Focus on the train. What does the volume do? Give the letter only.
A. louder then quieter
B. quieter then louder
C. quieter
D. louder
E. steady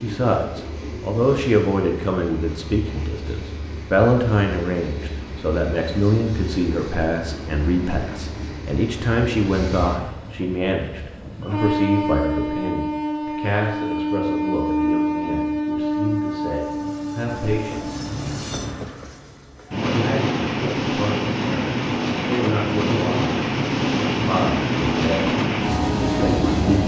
D.